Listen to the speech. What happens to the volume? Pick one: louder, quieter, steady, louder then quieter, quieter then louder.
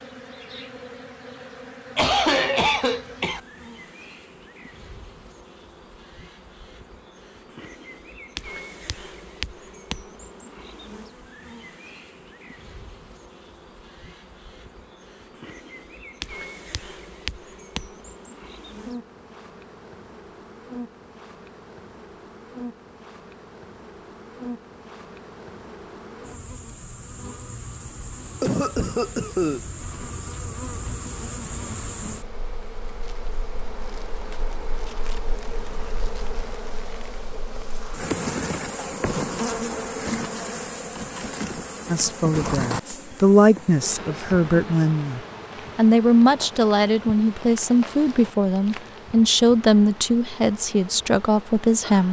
steady.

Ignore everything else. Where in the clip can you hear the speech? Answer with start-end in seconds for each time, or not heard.
41.9-52.0.